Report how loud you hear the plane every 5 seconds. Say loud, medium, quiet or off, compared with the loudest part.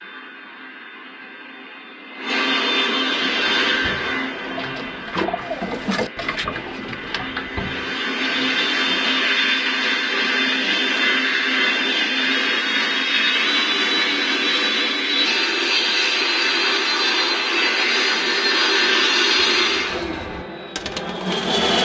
medium, medium, loud, loud, medium.